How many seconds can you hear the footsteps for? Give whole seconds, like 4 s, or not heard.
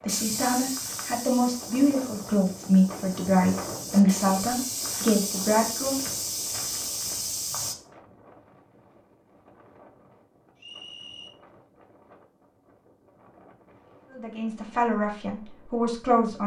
8 s.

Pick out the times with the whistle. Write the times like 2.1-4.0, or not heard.
10.6-11.3.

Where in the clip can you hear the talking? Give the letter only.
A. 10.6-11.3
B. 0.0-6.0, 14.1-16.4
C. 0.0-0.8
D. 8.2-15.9
B.